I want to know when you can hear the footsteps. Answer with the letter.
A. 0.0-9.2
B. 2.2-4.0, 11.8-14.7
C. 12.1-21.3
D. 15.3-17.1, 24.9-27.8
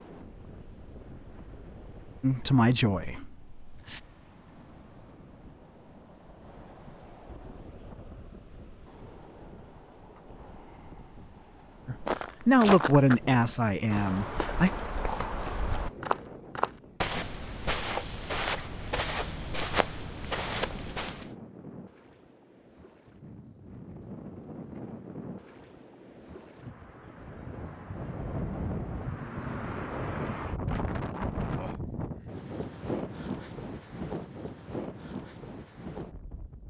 C.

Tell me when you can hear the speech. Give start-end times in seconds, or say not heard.
2.2-4.0, 11.8-14.7.